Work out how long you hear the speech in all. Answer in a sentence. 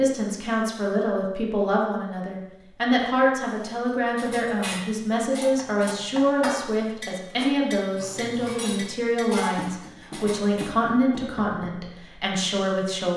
You can hear the speech for 13 seconds altogether.